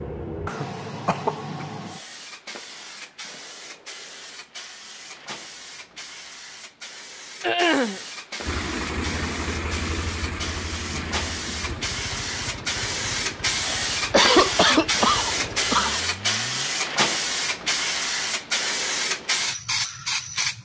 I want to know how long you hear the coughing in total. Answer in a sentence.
The coughing can be heard for 4 seconds in total.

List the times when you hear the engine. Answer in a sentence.
You can hear the engine from 8.4 to 16.8 s.